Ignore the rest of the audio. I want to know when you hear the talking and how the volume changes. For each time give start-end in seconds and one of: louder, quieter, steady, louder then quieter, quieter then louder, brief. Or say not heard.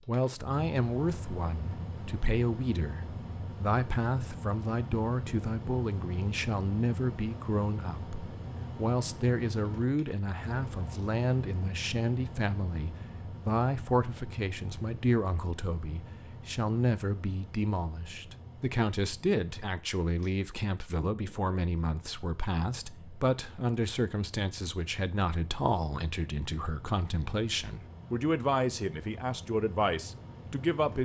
0.1-31.0 steady.